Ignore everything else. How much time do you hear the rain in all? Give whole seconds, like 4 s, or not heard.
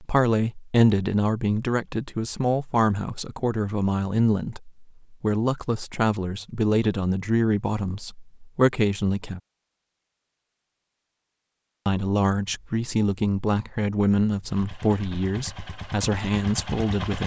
not heard.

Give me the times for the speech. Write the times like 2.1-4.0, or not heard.
0.0-9.4, 11.8-17.2.